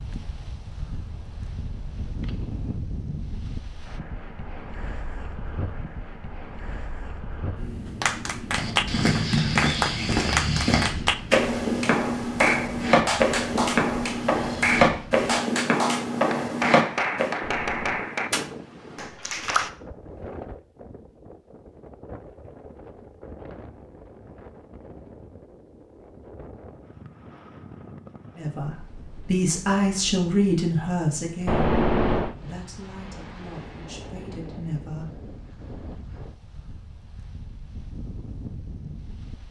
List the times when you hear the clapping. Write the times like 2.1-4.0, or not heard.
8.0-19.7.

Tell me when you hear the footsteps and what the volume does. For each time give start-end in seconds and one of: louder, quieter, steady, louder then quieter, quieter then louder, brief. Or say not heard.
8.5-17.4 steady.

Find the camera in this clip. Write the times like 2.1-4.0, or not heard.
1.1-2.8, 17.4-18.1, 31.4-32.4.